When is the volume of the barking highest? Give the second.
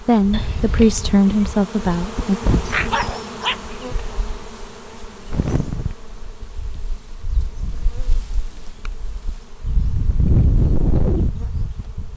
3 s.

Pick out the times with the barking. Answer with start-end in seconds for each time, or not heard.
2.6-4.2.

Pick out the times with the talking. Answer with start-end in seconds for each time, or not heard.
0.0-2.4.